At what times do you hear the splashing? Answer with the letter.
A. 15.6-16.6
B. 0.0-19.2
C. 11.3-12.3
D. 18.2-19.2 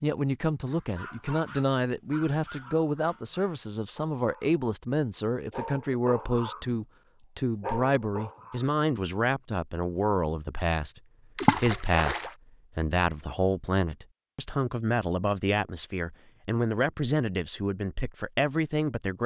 C.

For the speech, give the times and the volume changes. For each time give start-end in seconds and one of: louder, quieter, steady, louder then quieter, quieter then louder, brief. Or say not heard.
0.0-19.2 steady.